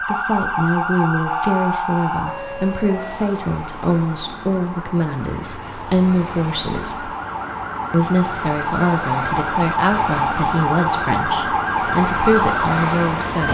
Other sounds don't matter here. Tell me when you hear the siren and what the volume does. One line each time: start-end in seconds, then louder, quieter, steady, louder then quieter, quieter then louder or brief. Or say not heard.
0.0-13.4 quieter then louder.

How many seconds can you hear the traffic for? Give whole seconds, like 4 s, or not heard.
11 s.